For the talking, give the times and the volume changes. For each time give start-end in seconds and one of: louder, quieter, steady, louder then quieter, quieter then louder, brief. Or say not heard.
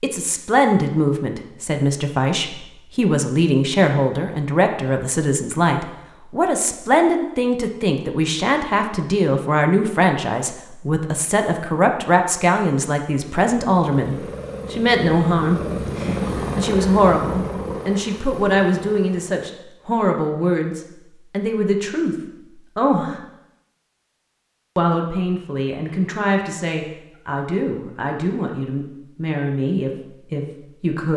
0.0-22.1 steady
22.8-23.2 brief
24.8-31.1 steady.